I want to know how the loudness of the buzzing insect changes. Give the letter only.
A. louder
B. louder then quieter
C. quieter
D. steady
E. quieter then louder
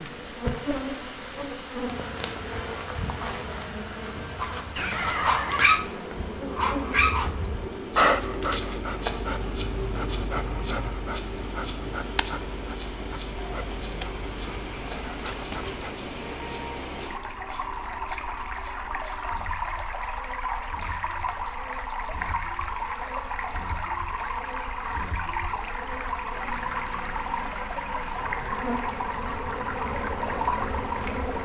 E.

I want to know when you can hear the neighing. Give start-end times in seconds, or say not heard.
4.2-5.8.